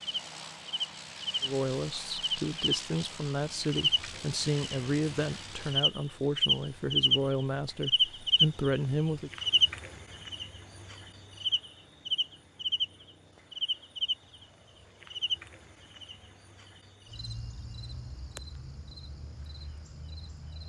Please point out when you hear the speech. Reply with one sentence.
You can hear the speech from 1.4 to 9.3 s.